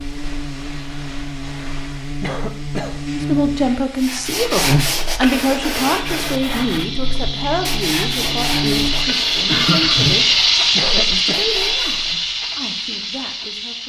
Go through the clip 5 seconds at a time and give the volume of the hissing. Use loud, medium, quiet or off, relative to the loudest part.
quiet, loud, loud.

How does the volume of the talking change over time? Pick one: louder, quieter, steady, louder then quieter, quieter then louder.
quieter.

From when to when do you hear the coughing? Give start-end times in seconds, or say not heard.
2.2-3.0, 10.8-11.4.